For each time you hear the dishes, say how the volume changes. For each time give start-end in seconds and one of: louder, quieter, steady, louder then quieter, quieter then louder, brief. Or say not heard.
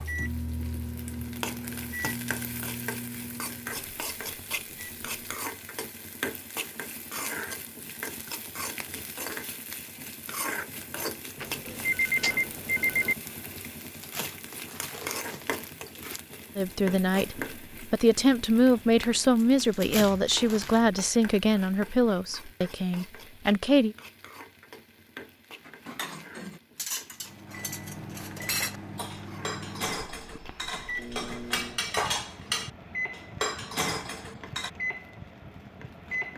25.6-34.7 louder.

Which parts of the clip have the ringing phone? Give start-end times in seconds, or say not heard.
11.4-13.2.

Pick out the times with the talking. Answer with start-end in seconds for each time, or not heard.
16.6-23.9.